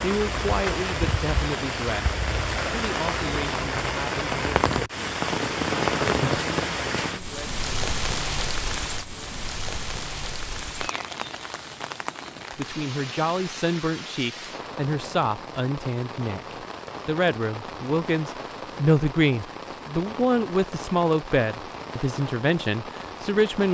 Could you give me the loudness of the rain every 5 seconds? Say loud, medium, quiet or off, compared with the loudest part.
loud, loud, medium, medium, medium.